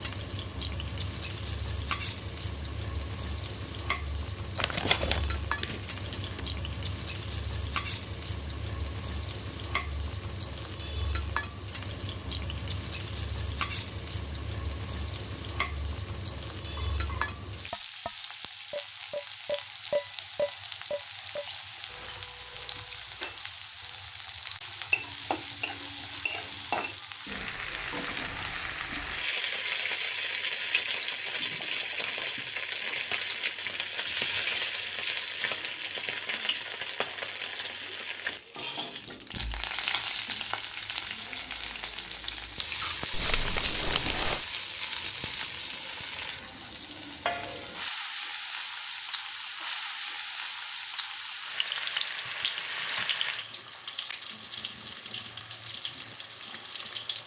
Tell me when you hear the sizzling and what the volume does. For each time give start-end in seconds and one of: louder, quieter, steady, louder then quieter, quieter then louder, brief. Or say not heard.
0.0-57.2 steady.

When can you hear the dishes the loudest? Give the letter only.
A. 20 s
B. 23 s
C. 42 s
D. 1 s
A.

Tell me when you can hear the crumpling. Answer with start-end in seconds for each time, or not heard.
4.5-6.4, 43.1-44.5.